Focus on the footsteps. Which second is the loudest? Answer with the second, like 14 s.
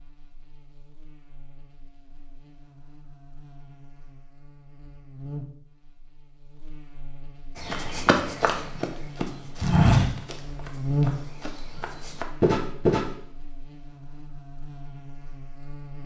10 s.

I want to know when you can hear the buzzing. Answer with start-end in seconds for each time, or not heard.
0.0-16.0.